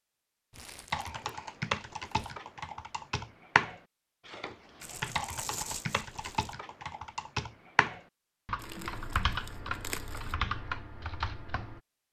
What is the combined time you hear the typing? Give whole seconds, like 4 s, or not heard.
11 s.